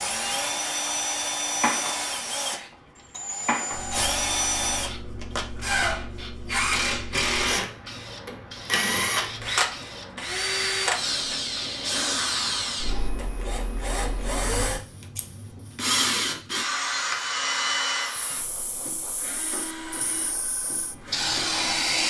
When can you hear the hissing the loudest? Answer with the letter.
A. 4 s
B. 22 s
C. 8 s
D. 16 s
B.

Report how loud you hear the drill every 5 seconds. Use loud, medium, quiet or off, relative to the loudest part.
loud, loud, loud, loud, quiet.